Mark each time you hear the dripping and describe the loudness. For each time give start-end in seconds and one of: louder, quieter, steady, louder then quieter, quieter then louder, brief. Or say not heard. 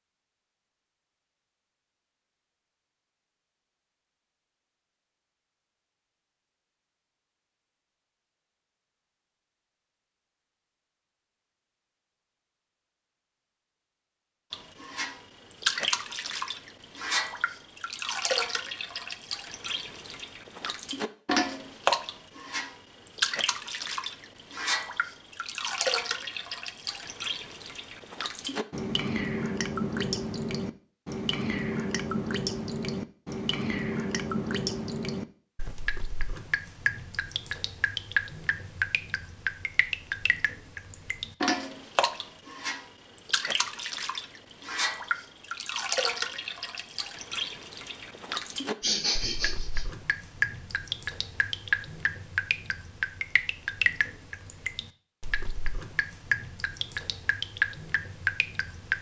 14.5-58.9 steady.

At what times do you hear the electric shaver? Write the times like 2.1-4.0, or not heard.
not heard.